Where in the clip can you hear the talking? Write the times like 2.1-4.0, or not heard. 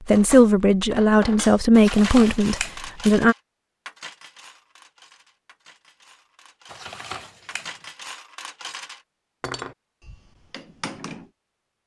0.1-3.4.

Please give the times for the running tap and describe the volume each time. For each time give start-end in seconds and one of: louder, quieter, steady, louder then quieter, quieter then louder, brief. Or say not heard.
not heard.